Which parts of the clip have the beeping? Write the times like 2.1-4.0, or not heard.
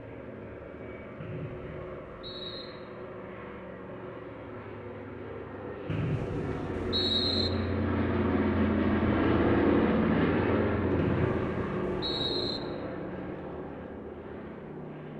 not heard.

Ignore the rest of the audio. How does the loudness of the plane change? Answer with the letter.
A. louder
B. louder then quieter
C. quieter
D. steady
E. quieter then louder
B.